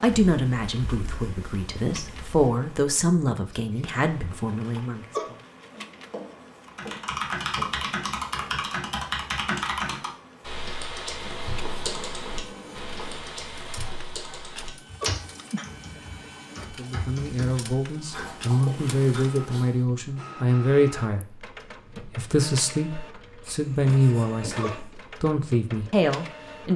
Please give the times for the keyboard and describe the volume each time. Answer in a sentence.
You can hear the keyboard from 6.7 to 18.4 s, getting quieter.